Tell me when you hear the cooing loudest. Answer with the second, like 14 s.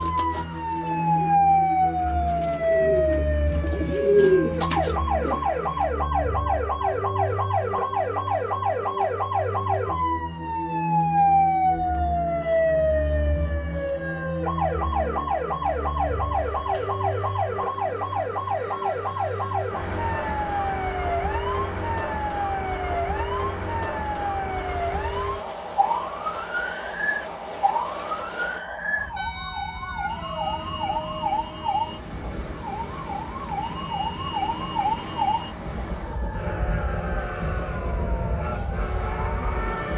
4 s.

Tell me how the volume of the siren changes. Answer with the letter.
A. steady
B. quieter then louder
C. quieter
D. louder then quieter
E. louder
C.